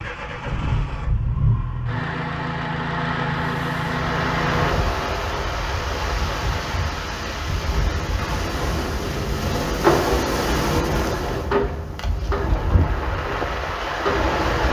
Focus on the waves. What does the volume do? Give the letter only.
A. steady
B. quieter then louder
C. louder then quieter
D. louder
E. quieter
A.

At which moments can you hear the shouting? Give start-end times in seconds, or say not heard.
not heard.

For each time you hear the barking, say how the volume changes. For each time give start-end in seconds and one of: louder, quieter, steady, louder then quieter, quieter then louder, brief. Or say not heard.
not heard.